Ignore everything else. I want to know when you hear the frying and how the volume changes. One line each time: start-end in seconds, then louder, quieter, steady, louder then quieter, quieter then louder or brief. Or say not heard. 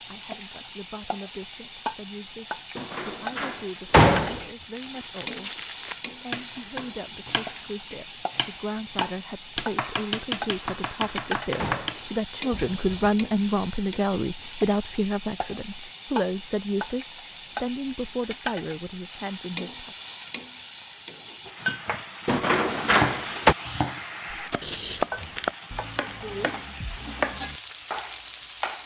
0.0-28.8 steady.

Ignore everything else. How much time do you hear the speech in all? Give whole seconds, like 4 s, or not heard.
20 s.